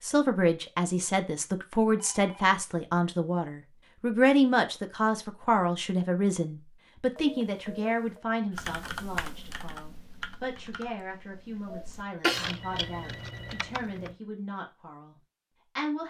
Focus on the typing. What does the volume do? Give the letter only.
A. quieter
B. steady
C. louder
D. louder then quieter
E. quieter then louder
E.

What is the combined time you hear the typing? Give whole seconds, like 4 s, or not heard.
6 s.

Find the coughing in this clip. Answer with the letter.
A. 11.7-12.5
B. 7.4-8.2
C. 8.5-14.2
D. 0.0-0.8
A.